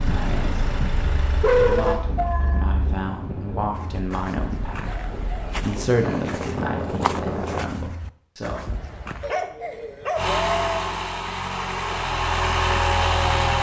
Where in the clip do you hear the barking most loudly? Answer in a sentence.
The volume of the barking peaks at 2 seconds.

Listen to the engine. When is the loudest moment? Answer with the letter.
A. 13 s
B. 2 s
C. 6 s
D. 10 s
A.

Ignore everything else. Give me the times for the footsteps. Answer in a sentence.
The footsteps can be heard from 3.7 to 9.3 s.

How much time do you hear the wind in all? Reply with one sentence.
You can hear the wind for 8 seconds altogether.